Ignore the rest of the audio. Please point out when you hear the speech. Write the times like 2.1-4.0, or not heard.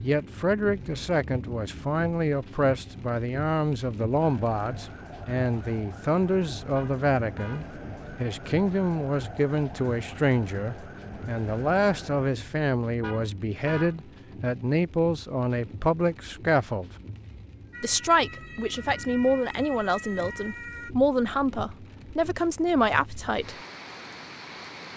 0.0-16.9, 17.8-23.6.